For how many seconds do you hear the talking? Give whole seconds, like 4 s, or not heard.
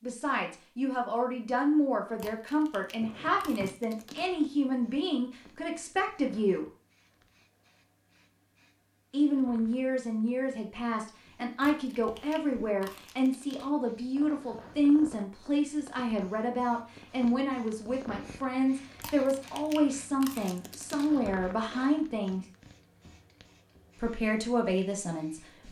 22 s.